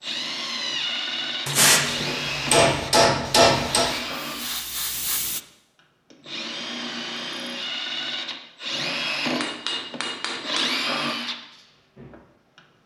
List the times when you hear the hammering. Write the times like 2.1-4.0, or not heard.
1.4-3.9, 9.4-10.8.